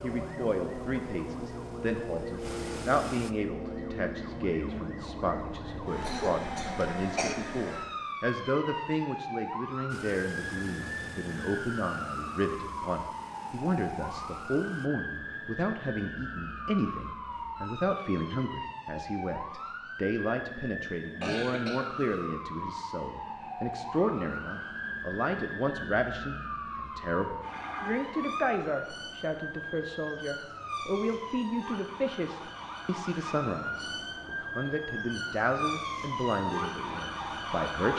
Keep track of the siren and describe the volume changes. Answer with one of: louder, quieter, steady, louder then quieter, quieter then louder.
steady.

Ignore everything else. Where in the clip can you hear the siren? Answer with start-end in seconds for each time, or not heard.
0.0-37.9.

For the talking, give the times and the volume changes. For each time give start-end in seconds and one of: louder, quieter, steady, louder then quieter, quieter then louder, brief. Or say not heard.
0.0-37.9 steady.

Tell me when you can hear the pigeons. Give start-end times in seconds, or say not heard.
not heard.